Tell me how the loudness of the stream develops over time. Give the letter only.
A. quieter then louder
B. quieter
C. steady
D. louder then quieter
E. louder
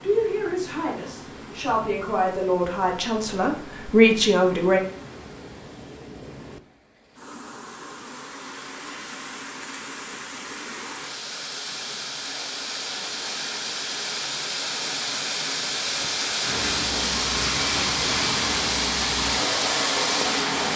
E.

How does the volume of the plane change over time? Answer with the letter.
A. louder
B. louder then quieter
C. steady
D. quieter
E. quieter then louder
A.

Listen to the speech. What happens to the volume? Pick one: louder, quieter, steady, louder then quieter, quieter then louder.
louder.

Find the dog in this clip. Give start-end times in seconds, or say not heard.
not heard.